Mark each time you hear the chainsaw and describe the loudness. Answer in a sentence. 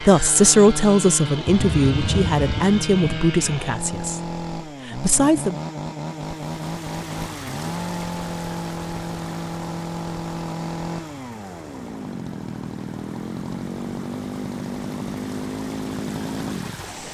You can hear the chainsaw from 0.0 to 16.9 s, at a steady volume.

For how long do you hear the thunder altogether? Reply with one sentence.
You can hear the thunder for 2 seconds altogether.